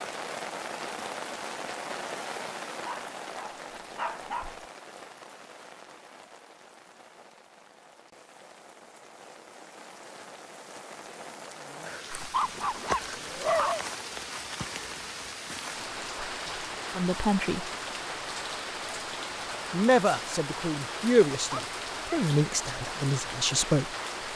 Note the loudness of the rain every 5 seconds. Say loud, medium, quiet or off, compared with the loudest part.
loud, quiet, loud, loud, loud.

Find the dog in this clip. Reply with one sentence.
You can hear the dog from 2.8 to 4.5 s, from 12.2 to 13.8 s and from 21.5 to 22.2 s.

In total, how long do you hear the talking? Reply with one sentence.
You can hear the talking for 5 seconds altogether.